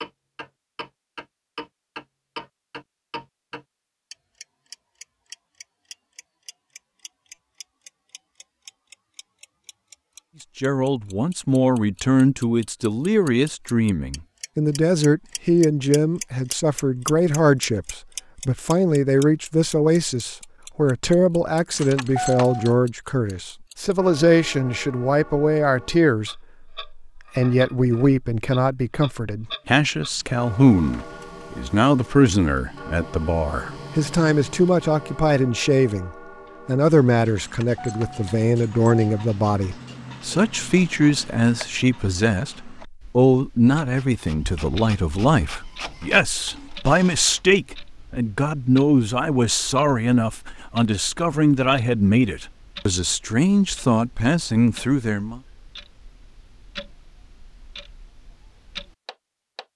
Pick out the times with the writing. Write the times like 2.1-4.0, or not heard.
not heard.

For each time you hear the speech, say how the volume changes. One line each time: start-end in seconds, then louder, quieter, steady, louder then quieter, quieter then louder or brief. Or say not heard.
10.6-55.4 steady.